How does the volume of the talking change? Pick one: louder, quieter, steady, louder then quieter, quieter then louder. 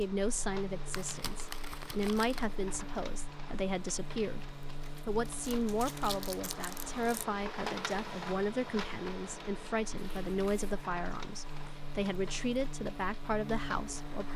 steady.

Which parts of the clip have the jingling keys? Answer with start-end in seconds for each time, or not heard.
not heard.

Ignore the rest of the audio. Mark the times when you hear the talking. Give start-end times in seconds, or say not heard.
0.0-14.3.